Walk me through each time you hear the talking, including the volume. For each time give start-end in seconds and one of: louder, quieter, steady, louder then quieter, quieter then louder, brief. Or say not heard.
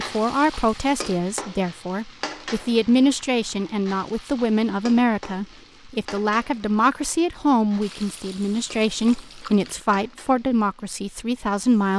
0.0-11.9 steady.